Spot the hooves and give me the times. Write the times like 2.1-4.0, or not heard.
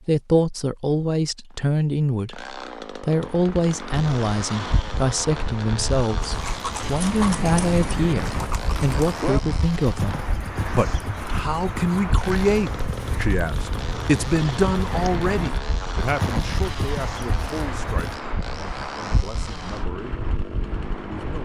6.2-18.1.